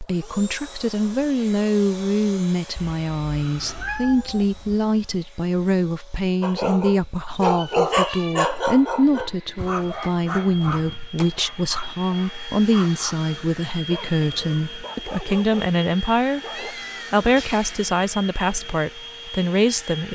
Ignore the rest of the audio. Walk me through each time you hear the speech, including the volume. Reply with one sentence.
The speech can be heard from 0.0 to 20.0 s, at a steady volume.